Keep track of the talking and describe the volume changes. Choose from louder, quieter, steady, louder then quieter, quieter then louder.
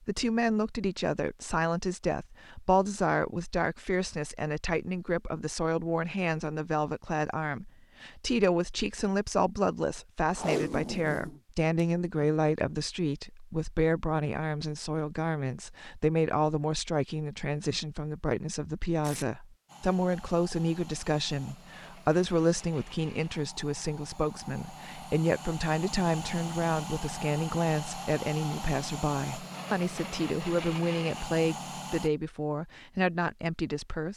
steady.